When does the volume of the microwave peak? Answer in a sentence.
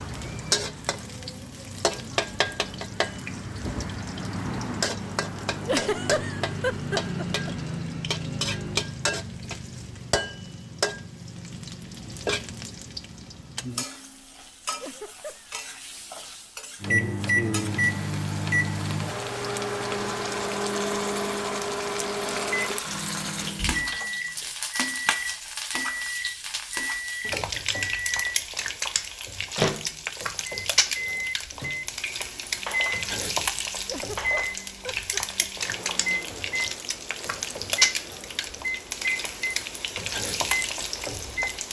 The volume of the microwave peaks at 17 seconds.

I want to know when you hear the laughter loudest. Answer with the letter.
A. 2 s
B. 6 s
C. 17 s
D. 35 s
B.